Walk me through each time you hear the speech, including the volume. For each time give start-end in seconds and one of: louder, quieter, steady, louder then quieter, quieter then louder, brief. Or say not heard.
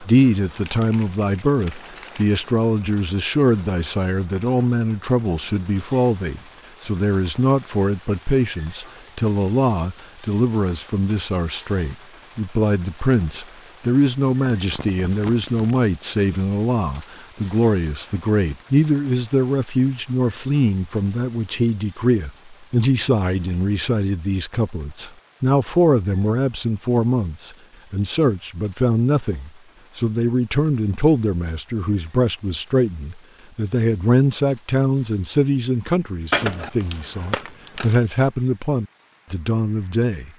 0.0-40.3 steady.